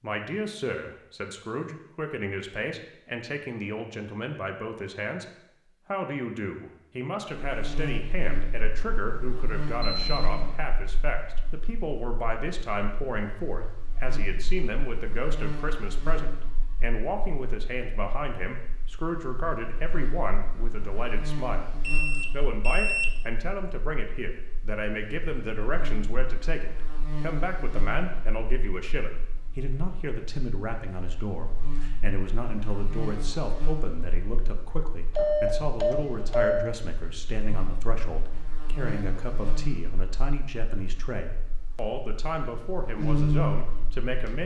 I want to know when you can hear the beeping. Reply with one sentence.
The beeping can be heard from 9.8 to 10.6 s, from 21.8 to 23.1 s and from 35.1 to 36.7 s.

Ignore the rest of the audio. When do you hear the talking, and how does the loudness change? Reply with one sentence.
You can hear the talking from 0.0 to 44.4 s, at a steady volume.